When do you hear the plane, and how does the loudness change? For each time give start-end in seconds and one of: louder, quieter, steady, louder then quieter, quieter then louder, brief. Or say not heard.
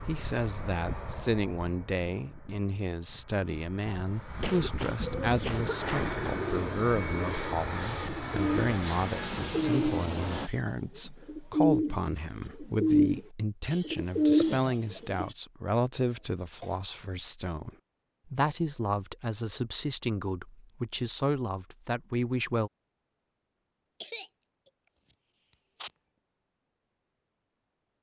0.0-10.5 quieter then louder.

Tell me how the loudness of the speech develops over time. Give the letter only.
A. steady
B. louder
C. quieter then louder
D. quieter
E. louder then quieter
A.